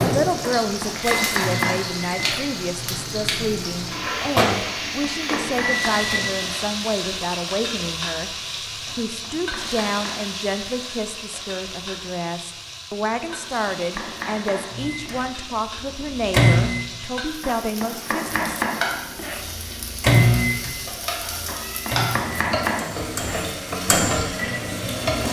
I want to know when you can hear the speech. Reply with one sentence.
The speech can be heard from 0.0 to 18.5 s.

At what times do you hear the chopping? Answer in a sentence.
The chopping can be heard from 0.6 to 2.5 s, from 4.7 to 6.7 s, from 8.8 to 10.3 s, from 13.2 to 15.2 s, from 17.4 to 19.4 s and from 21.4 to 23.5 s.